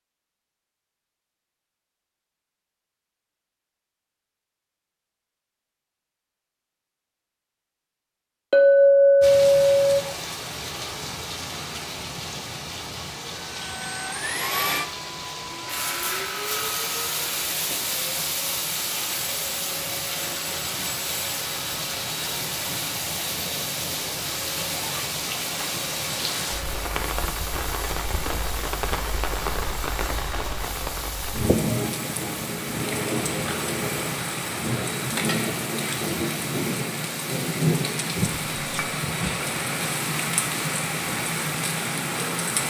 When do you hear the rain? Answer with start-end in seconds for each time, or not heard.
9.2-42.6.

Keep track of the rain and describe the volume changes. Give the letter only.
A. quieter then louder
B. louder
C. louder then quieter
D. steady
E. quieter
B.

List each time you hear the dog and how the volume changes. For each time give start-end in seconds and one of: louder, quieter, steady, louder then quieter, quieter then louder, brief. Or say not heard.
not heard.